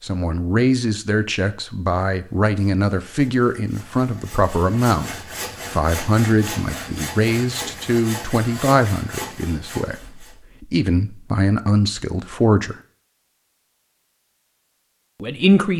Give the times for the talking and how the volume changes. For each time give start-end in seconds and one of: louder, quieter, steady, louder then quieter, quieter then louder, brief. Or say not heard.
0.0-12.8 steady
15.2-15.7 brief.